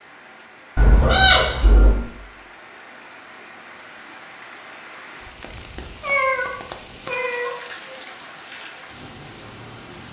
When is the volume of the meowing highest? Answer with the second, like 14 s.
1 s.